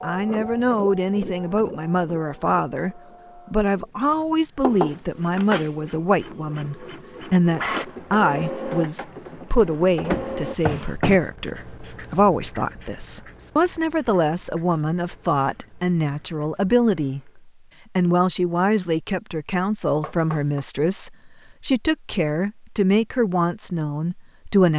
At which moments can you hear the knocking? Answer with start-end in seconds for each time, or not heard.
4.6-5.7, 10.1-11.2, 20.0-20.6.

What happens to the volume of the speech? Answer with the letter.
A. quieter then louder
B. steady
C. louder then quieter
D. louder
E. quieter
B.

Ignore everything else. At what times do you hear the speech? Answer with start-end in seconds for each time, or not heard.
0.0-24.7.